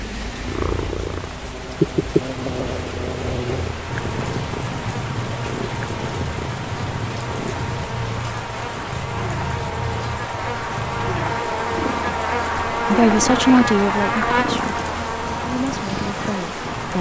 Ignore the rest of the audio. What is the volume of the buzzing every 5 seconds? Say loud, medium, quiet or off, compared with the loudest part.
medium, medium, loud, medium.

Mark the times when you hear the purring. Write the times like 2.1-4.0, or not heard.
0.2-16.9.